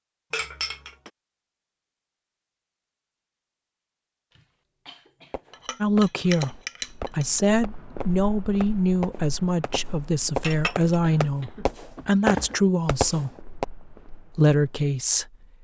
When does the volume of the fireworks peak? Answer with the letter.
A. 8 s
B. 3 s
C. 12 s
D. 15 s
C.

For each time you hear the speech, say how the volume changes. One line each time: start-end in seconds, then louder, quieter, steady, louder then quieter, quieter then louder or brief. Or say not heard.
5.8-13.3 steady
14.3-15.3 brief.